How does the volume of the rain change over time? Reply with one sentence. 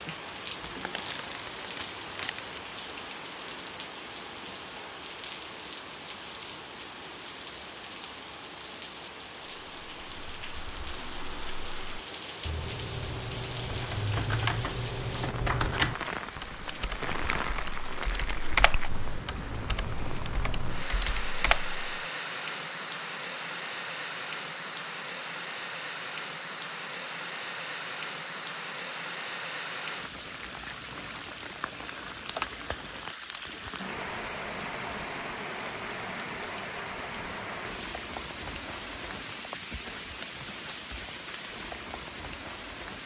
The volume of the rain stays about the same.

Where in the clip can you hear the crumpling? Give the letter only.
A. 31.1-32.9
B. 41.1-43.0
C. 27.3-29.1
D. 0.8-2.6
D.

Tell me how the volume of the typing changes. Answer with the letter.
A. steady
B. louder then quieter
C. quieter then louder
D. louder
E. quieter
B.